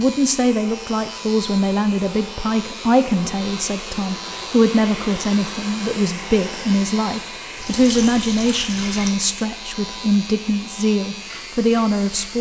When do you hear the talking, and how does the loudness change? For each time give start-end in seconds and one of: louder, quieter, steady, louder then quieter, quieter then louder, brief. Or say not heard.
0.0-12.3 steady.